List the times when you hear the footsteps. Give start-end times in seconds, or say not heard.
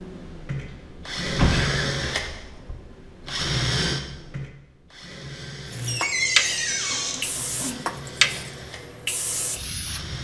not heard.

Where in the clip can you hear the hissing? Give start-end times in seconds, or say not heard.
5.7-10.1.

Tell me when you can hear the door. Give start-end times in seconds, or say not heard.
1.2-2.8, 5.8-7.2.